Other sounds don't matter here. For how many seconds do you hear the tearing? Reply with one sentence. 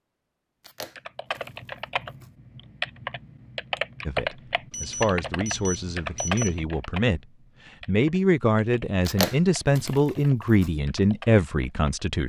You can hear the tearing for 3 seconds altogether.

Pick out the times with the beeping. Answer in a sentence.
You can hear the beeping from 4.7 to 6.7 s.